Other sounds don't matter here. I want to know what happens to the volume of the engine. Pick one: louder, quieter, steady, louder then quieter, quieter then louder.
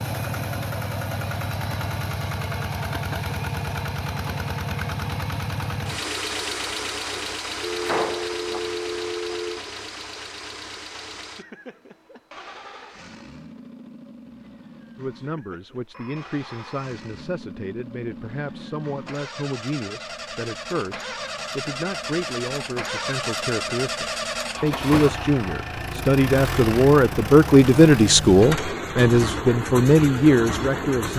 quieter then louder.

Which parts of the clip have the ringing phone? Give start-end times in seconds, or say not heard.
7.6-9.7, 15.9-17.2.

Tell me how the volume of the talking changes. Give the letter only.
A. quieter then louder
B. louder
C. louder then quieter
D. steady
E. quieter
B.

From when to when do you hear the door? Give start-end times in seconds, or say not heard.
7.7-8.6.